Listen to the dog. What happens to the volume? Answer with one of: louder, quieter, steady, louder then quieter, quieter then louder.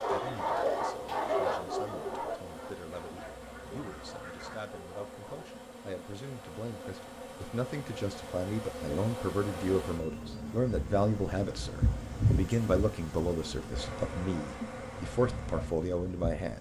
quieter.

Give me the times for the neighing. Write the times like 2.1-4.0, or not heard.
not heard.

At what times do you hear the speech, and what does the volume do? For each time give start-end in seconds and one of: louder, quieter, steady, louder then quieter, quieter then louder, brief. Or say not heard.
0.0-16.5 louder.